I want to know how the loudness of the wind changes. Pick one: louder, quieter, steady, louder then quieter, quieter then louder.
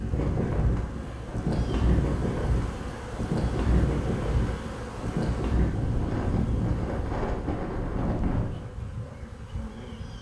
steady.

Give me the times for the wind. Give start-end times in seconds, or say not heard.
0.0-8.7.